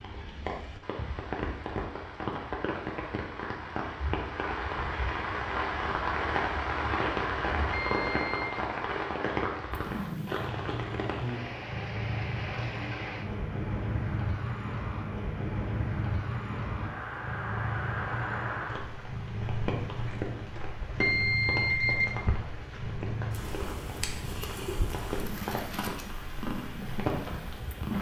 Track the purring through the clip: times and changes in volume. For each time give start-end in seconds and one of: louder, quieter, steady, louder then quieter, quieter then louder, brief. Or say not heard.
9.7-27.9 steady.